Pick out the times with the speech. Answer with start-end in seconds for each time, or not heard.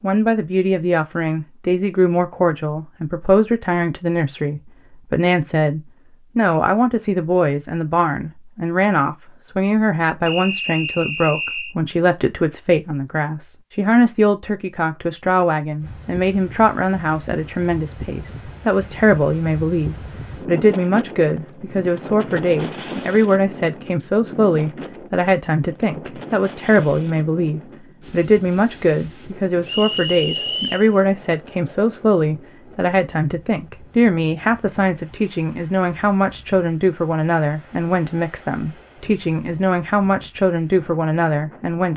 0.0-41.9.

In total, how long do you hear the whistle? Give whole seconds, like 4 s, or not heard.
3 s.